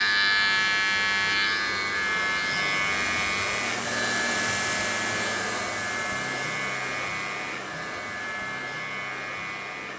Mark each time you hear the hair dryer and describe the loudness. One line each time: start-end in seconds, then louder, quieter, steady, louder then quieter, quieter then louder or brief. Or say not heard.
0.0-9.9 louder then quieter.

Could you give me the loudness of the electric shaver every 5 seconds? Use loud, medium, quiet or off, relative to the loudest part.
loud, medium.